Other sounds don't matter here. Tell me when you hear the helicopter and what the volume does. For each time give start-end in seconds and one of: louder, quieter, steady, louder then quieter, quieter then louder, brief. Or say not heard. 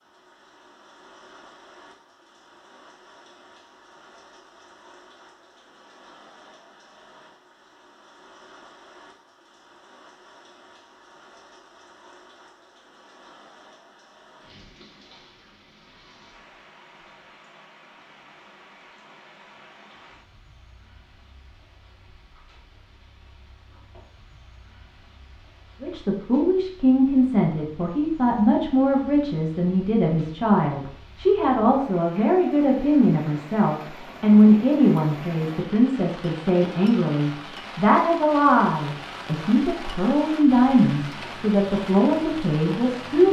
not heard.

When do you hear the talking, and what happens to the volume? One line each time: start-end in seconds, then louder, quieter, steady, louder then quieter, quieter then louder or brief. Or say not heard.
25.8-43.2 steady.